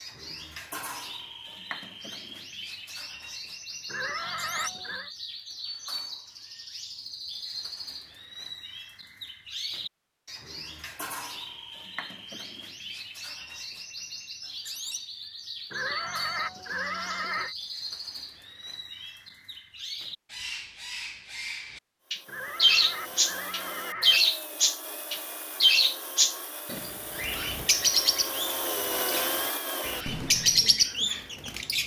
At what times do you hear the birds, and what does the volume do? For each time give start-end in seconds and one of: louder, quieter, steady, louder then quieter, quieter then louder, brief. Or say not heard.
0.0-31.8 louder.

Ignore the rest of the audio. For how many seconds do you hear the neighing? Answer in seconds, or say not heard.
5 s.